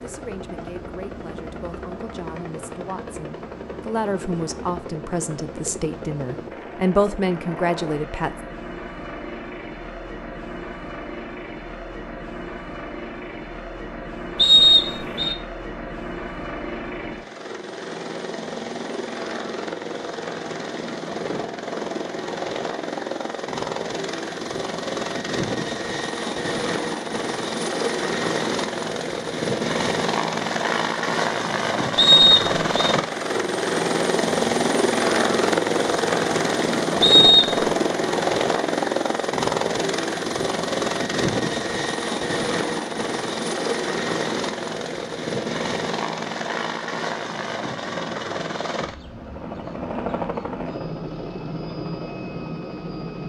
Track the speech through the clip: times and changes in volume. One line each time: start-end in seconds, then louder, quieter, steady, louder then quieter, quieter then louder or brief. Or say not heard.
0.0-8.3 louder.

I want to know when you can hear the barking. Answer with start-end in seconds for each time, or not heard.
not heard.